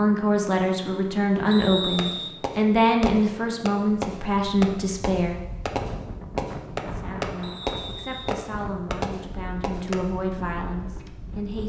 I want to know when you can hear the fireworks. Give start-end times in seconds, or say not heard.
1.4-10.0.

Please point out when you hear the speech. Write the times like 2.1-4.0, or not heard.
0.0-5.4, 6.8-11.6.